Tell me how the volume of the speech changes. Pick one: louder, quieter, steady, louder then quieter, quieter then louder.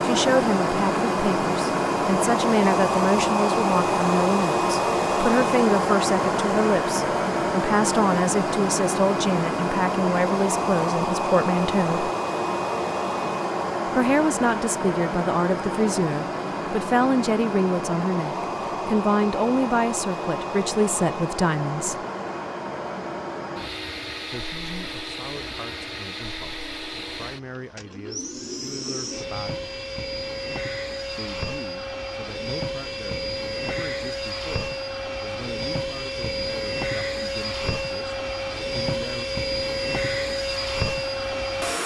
quieter.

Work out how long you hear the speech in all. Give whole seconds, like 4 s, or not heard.
34 s.